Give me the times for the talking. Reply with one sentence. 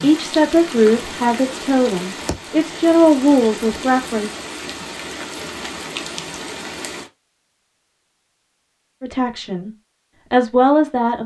You can hear the talking from 0.0 to 4.3 s, from 9.0 to 9.7 s and from 10.3 to 11.2 s.